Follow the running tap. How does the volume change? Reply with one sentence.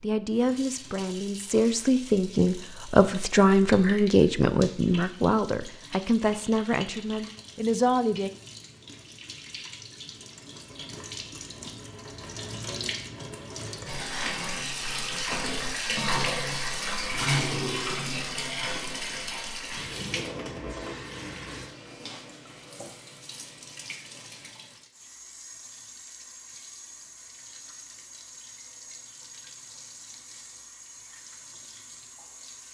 The volume of the running tap goes up, then down.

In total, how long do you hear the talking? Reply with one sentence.
You can hear the talking for 8 seconds altogether.